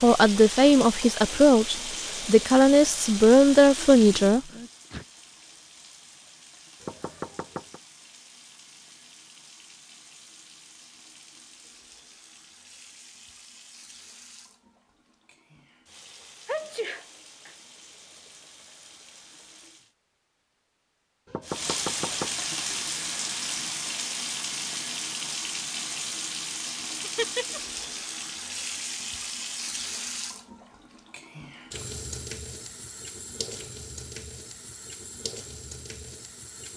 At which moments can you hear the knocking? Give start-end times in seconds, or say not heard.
6.8-7.8, 21.2-22.9.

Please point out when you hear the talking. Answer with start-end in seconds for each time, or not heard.
0.0-4.4.